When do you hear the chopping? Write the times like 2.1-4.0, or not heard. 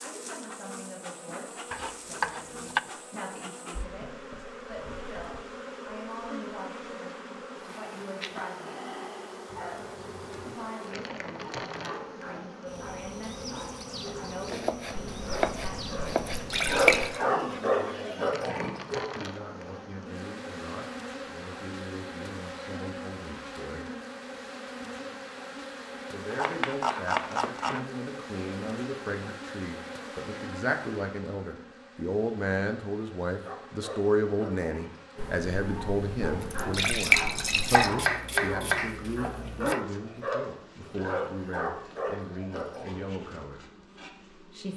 1.7-2.8, 14.4-17.1, 26.3-27.9, 37.6-39.8.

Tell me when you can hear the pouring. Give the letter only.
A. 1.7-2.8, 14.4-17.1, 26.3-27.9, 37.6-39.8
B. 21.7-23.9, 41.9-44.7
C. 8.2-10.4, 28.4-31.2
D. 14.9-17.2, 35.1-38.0
D.